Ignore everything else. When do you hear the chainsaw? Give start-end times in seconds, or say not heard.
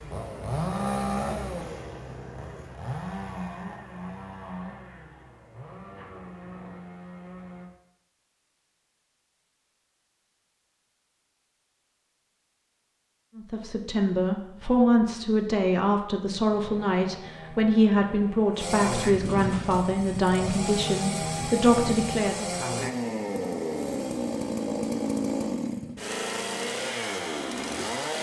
0.0-7.7, 16.4-28.1.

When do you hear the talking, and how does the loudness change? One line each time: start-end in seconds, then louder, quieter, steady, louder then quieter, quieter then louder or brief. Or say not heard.
13.3-22.5 steady.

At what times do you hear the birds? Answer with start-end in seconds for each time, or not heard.
not heard.